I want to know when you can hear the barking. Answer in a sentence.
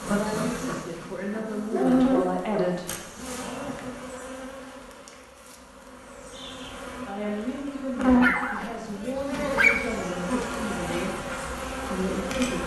You can hear the barking from 1.7 to 2.8 s and from 8.2 to 9.8 s.